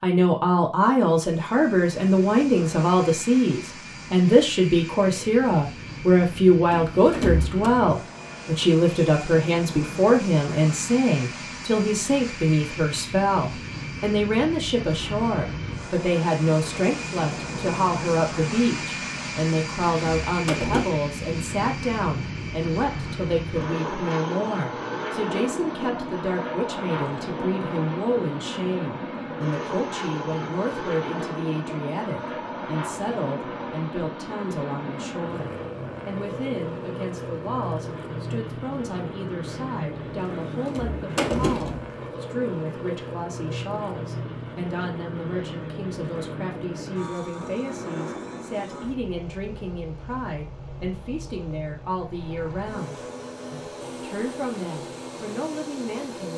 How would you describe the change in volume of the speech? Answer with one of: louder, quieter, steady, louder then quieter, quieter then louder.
quieter.